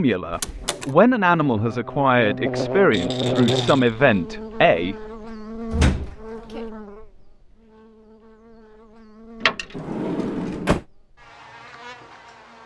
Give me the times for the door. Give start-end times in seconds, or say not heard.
0.3-0.9, 5.7-6.6, 9.8-10.8.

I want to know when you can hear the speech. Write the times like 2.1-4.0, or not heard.
0.0-5.0.